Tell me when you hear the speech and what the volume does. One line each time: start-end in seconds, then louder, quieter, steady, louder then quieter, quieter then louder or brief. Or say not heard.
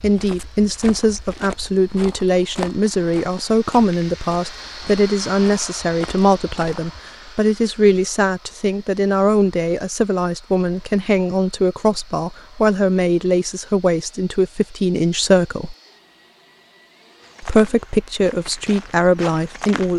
0.0-15.8 steady
17.4-19.9 brief.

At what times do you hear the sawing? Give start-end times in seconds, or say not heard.
not heard.